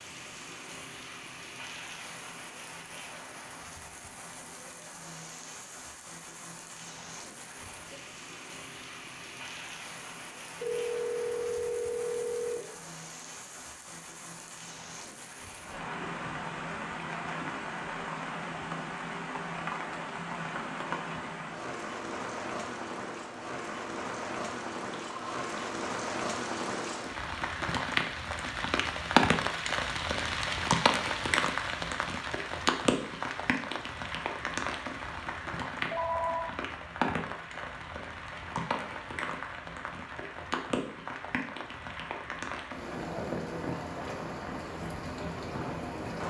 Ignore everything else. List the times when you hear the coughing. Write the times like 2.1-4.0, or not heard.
not heard.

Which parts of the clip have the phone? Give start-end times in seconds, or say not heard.
10.6-12.6, 24.9-25.4, 35.9-36.5.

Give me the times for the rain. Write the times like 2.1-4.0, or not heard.
0.0-46.2.